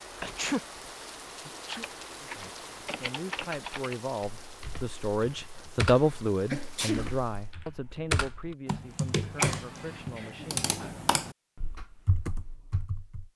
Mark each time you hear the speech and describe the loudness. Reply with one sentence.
You can hear the speech from 2.2 to 10.7 s, getting louder then quieter.